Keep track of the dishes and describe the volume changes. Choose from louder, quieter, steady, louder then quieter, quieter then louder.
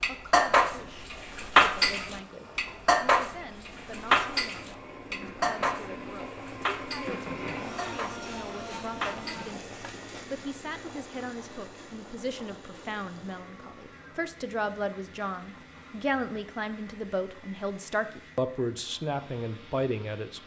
quieter.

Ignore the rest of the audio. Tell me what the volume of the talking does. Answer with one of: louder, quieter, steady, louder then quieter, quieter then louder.
louder.